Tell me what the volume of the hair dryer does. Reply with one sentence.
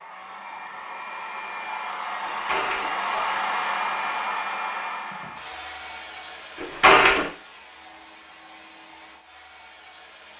The loudness of the hair dryer goes up, then down.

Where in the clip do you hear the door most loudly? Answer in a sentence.
The volume of the door peaks at 7 seconds.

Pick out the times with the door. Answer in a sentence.
The door can be heard from 2.2 to 3.4 s and from 6.5 to 7.3 s.